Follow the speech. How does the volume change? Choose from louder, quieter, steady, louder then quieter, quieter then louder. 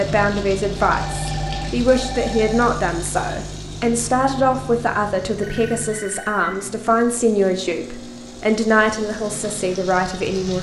steady.